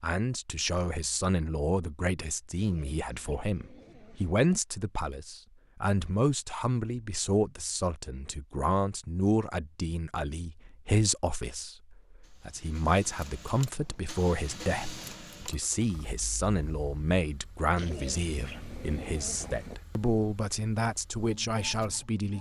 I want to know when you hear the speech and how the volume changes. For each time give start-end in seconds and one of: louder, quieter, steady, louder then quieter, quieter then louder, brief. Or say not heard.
0.0-22.3 steady.